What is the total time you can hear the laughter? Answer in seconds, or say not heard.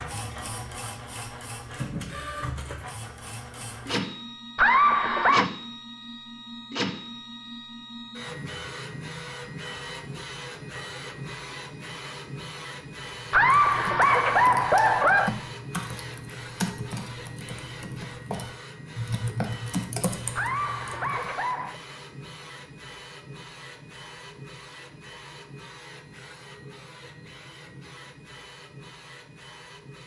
4 s.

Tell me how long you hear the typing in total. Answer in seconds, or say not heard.
8 s.